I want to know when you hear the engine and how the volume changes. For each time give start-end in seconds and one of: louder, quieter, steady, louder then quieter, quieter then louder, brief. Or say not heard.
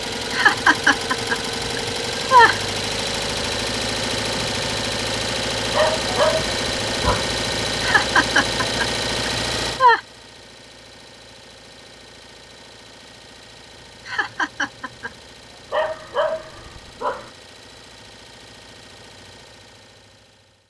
0.0-20.6 quieter.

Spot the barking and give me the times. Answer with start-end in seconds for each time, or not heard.
5.7-7.3, 15.7-17.3.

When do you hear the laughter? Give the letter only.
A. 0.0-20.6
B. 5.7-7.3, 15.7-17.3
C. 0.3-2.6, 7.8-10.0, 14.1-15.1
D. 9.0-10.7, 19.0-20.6
C.